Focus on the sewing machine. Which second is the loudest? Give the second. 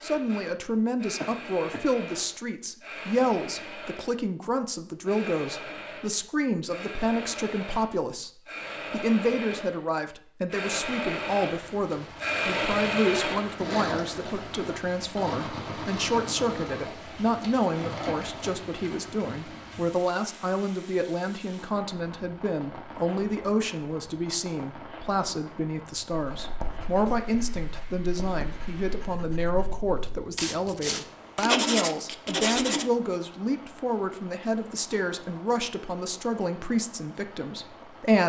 13 s.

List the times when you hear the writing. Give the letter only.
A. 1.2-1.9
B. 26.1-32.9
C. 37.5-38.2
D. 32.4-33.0
B.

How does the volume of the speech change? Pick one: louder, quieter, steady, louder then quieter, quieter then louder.
steady.